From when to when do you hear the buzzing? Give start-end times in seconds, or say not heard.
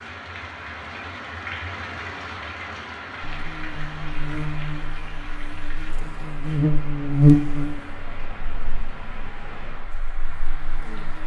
3.2-11.2.